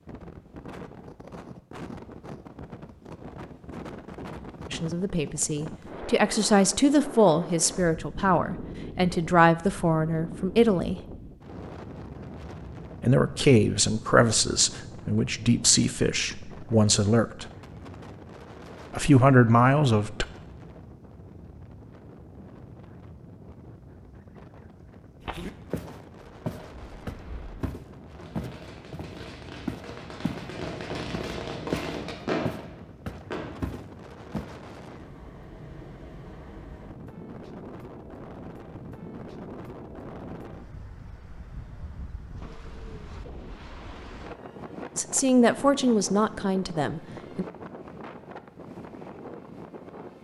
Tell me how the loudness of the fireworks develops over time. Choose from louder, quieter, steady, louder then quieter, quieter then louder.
louder.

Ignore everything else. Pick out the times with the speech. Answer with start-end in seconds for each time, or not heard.
4.7-11.0, 13.0-17.4, 18.9-20.2, 45.0-47.5.